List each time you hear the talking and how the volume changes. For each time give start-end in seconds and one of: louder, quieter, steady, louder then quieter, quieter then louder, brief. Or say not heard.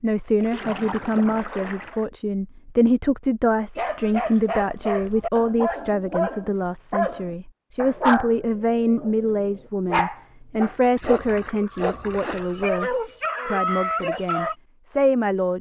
0.0-15.5 steady.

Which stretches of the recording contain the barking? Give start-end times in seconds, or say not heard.
3.8-14.6.